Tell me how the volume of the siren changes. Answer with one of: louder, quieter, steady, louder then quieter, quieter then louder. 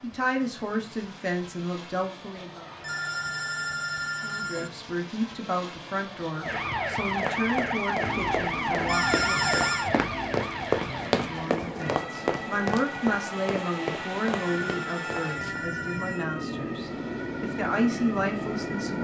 quieter.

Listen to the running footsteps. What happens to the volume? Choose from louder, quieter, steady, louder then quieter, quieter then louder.
louder then quieter.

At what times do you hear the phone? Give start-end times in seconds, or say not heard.
2.8-4.7, 8.8-9.9, 14.3-16.2.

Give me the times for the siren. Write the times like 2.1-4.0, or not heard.
6.4-19.0.